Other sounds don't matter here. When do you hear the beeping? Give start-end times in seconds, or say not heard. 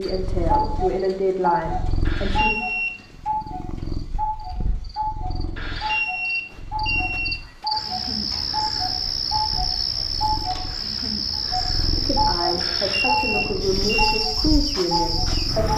2.0-3.0, 5.5-7.4, 12.6-14.2.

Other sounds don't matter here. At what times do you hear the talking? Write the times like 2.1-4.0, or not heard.
0.0-2.6, 11.9-15.7.